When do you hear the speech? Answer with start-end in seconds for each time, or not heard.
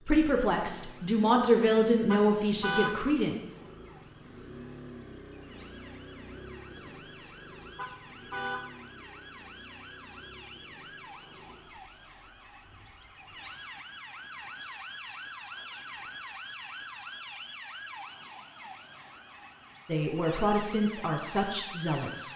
0.1-3.4, 19.9-22.3.